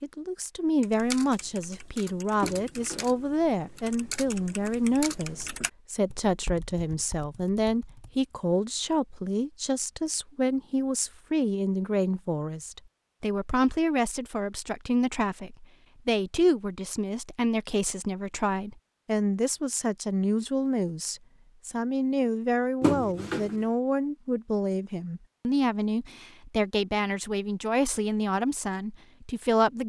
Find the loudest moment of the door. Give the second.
23 s.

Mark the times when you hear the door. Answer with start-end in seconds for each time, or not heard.
2.4-3.2, 22.8-23.6.